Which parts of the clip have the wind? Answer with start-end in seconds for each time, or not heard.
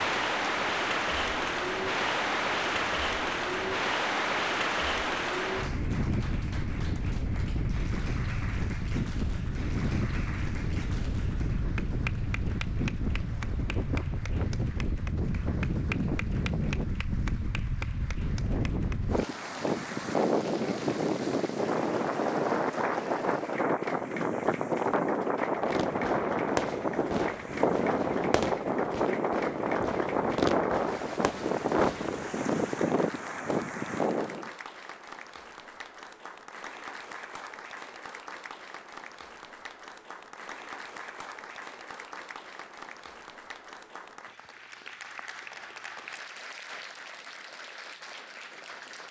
0.0-34.5.